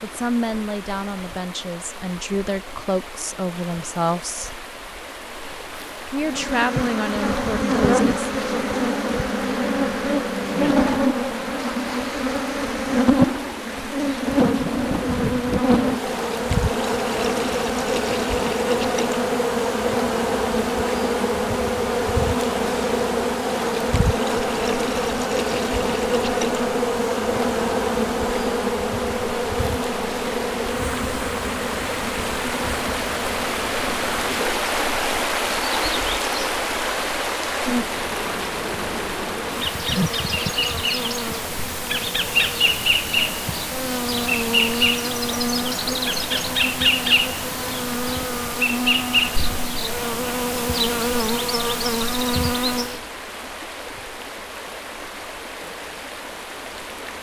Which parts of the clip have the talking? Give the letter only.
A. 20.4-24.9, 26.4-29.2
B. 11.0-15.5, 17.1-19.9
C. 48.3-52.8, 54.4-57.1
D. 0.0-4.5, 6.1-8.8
D.